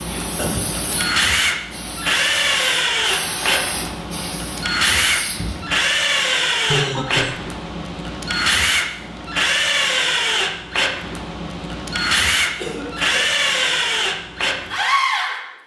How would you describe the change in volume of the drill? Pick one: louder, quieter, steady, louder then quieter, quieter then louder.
steady.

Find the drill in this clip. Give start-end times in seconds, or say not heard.
0.0-15.6.